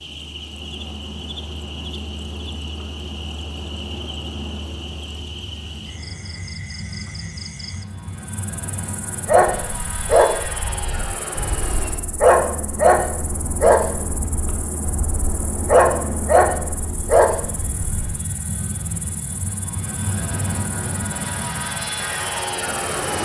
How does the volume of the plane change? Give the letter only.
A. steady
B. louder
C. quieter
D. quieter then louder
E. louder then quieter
B.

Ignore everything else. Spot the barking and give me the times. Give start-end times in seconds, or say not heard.
9.2-18.1.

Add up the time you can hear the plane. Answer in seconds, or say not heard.
23 s.